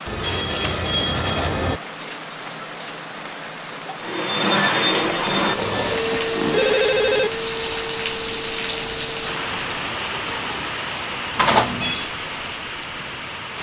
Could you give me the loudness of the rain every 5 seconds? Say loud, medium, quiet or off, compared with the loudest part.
medium, loud, loud.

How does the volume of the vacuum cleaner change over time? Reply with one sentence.
The volume of the vacuum cleaner goes down.